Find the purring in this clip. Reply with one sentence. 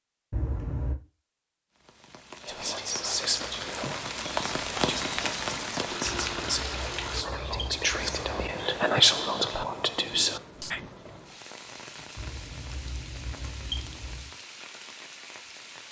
The purring can't be heard in this clip.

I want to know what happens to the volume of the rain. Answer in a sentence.
The loudness of the rain goes down.